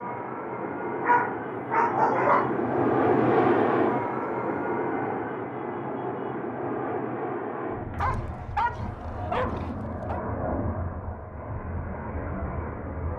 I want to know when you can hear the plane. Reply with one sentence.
You can hear the plane from 0.0 to 13.1 s.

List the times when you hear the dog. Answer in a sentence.
You can hear the dog from 1.0 to 2.5 s and from 8.0 to 10.2 s.